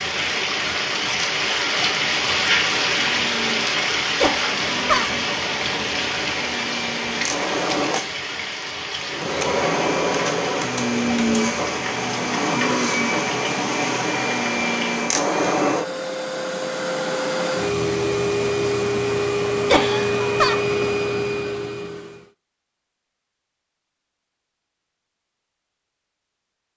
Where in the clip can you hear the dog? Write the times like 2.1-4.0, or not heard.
not heard.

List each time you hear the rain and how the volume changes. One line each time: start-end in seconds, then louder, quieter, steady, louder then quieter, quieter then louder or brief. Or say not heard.
0.0-15.1 quieter.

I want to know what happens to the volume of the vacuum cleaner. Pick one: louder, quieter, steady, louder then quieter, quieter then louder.
louder.